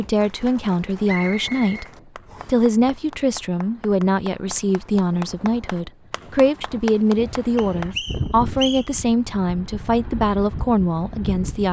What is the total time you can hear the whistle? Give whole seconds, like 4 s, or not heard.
3 s.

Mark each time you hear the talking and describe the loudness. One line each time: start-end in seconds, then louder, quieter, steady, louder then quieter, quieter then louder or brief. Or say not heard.
0.0-1.9 brief
2.5-11.6 steady.